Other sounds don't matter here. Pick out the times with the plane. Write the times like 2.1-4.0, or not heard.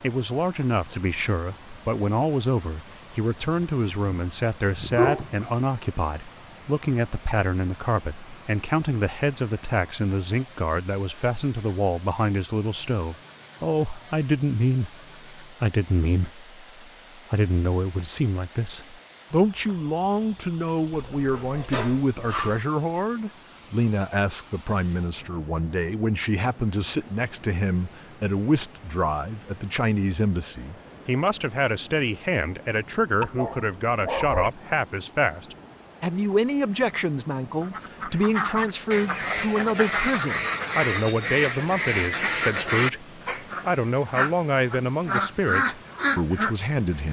not heard.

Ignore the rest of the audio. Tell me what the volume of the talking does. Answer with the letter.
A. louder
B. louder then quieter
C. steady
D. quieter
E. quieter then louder
C.